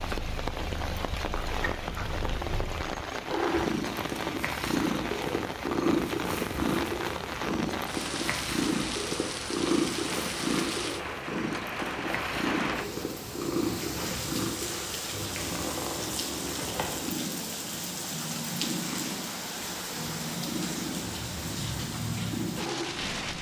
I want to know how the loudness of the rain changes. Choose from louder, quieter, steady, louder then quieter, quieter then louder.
steady.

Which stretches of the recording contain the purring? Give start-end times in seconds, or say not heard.
0.0-23.3.